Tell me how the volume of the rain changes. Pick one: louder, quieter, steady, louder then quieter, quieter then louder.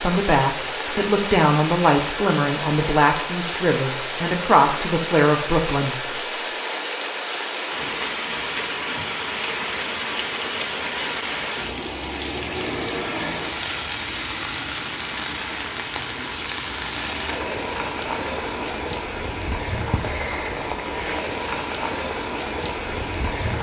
steady.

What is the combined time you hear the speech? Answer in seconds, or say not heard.
6 s.